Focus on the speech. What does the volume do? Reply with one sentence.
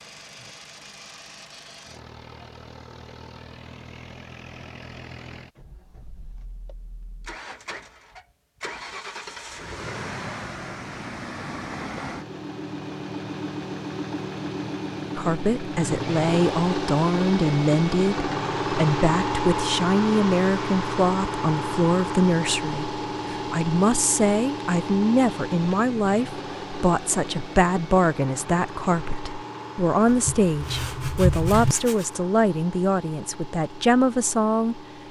The loudness of the speech stays about the same.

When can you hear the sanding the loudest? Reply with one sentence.
The volume of the sanding peaks at 31 seconds.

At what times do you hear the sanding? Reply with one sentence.
You can hear the sanding from 30.1 to 32.0 s.